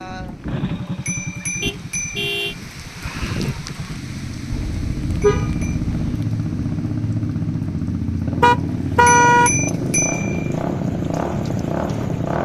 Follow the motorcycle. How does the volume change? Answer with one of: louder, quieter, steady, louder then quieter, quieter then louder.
louder.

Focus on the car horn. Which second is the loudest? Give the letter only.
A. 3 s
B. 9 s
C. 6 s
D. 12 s
B.